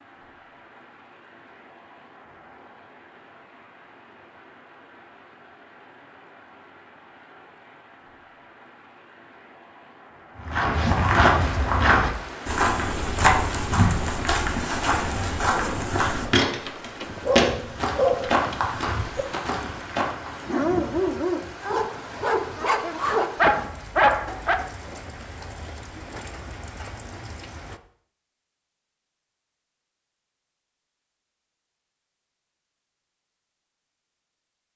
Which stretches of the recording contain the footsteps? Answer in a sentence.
You can hear the footsteps from 10.4 to 20.3 s.